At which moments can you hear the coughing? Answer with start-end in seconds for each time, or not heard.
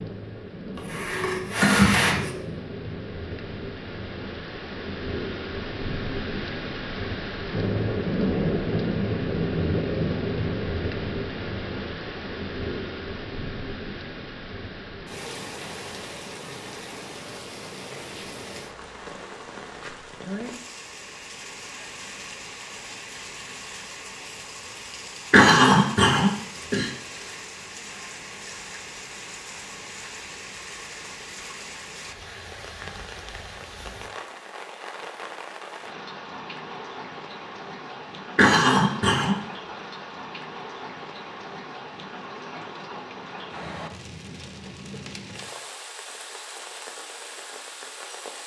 0.8-2.4, 25.3-26.9, 38.4-39.4.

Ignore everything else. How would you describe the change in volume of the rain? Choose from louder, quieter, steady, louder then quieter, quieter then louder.
quieter.